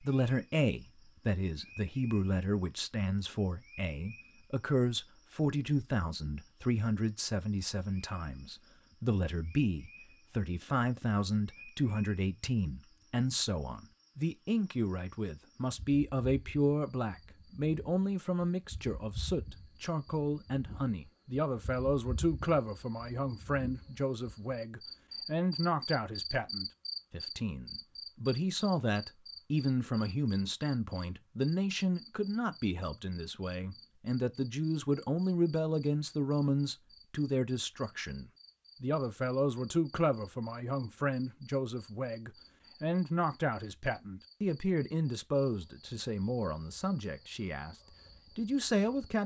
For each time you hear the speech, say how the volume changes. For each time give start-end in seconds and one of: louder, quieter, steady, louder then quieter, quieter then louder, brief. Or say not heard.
0.0-49.2 steady.